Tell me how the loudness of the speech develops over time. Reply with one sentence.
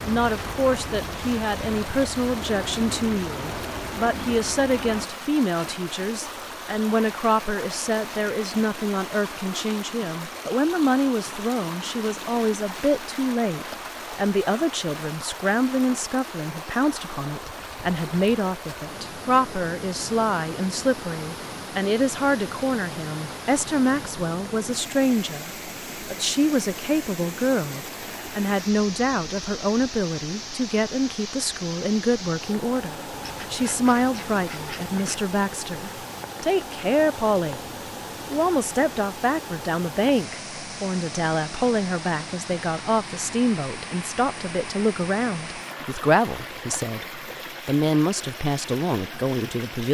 The loudness of the speech stays about the same.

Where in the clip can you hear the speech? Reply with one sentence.
The speech can be heard from 0.0 to 37.6 s and from 38.3 to 49.8 s.